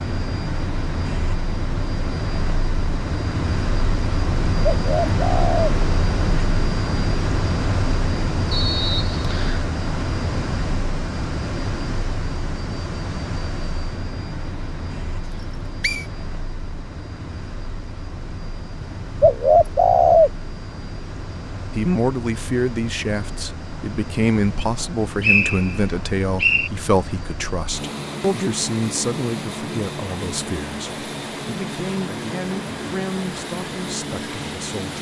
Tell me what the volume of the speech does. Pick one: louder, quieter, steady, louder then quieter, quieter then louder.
quieter.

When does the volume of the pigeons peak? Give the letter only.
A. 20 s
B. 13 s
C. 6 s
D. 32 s
A.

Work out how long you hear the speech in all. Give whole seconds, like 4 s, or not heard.
13 s.